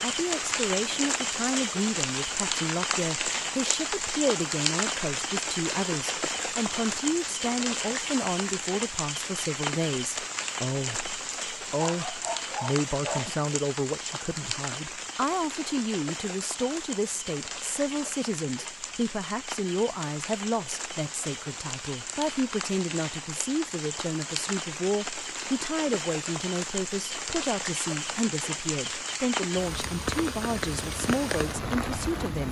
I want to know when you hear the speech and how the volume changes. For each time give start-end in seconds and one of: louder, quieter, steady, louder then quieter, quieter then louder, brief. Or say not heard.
0.0-32.4 steady.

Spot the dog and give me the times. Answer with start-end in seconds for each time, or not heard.
11.8-13.3.